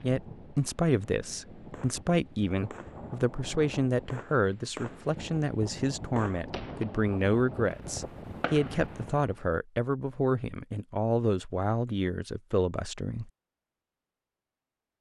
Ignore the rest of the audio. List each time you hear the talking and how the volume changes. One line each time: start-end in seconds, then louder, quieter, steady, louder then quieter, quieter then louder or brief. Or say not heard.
0.0-13.3 steady.